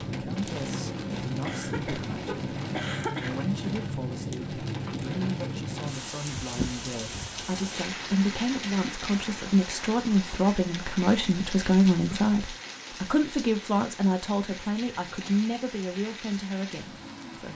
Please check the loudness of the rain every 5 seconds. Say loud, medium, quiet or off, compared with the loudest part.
loud, loud, medium, medium.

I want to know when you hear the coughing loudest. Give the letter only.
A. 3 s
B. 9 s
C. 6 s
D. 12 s
A.